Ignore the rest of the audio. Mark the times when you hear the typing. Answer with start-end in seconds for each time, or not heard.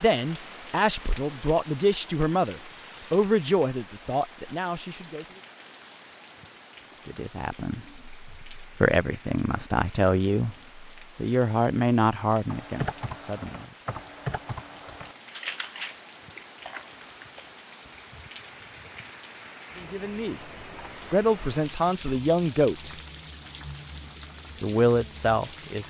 12.5-17.4.